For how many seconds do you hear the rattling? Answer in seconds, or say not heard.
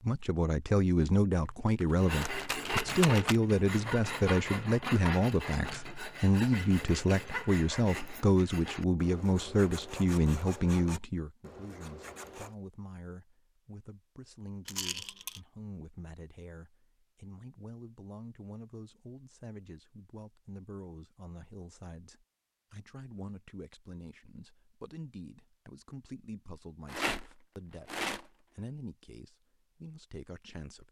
4 s.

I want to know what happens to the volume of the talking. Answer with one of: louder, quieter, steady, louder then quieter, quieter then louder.
quieter.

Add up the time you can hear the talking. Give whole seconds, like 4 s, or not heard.
31 s.